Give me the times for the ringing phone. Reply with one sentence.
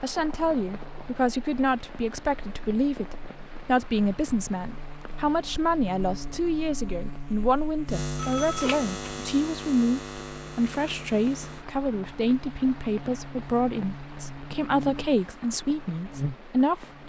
The ringing phone can be heard from 8.2 to 9.3 s.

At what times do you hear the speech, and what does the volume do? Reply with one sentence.
The speech can be heard from 0.0 to 17.0 s, at a steady volume.